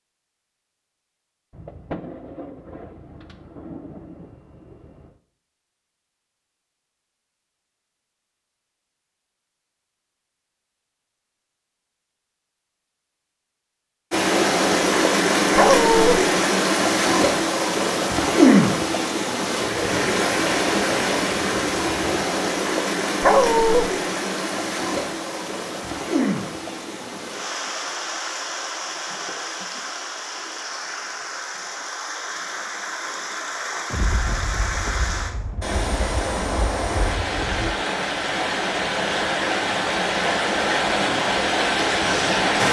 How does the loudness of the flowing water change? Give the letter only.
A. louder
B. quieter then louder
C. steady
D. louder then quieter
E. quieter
B.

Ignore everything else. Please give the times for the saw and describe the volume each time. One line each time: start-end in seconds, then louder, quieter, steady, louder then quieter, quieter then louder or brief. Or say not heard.
not heard.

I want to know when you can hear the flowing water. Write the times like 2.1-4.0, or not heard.
14.1-42.6.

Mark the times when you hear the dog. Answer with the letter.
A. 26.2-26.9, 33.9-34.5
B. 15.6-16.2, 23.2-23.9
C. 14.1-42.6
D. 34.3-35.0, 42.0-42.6
B.